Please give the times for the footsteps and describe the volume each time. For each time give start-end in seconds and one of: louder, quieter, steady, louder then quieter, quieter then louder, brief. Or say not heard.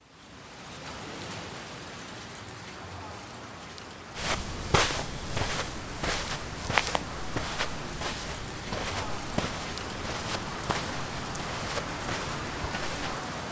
4.2-13.2 quieter.